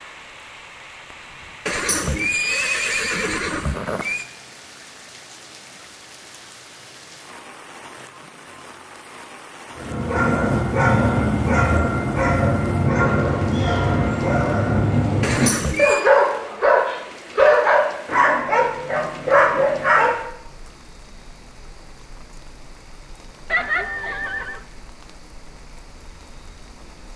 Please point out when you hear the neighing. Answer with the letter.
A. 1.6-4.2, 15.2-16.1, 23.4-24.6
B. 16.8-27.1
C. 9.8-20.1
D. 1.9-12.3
A.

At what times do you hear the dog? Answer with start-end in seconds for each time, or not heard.
9.8-20.1.